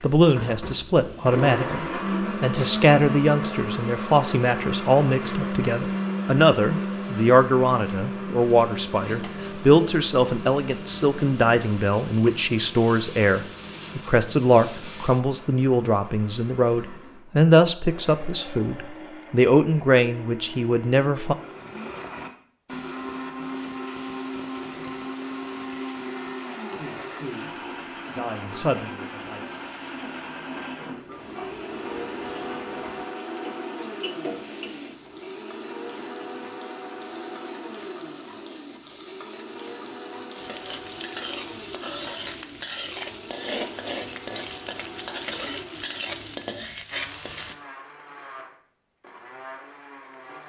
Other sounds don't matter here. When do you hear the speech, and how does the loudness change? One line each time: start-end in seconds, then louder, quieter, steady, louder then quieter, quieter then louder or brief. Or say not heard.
0.0-21.4 steady
26.7-29.4 brief.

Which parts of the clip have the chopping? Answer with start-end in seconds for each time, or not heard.
not heard.